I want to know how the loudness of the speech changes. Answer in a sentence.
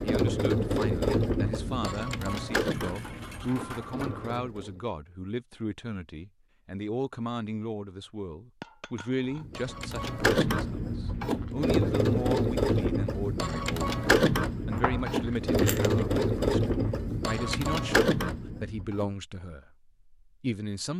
The loudness of the speech stays about the same.